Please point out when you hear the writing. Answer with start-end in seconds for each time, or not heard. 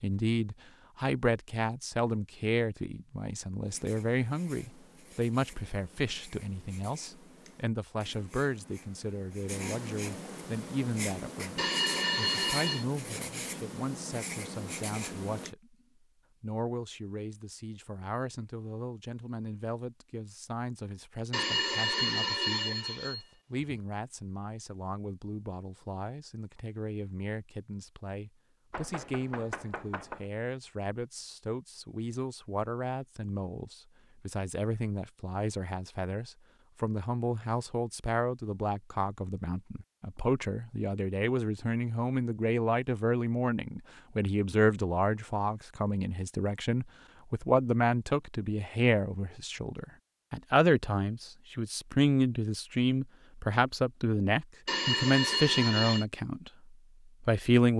3.6-15.6.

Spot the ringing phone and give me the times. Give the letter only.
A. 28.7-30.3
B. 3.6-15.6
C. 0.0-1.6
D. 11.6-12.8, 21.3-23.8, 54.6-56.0
D.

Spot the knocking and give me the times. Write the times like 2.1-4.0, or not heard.
28.7-30.3.